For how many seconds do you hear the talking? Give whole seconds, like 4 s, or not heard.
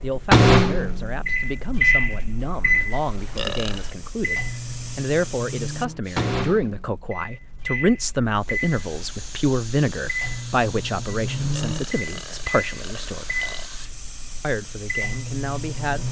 15 s.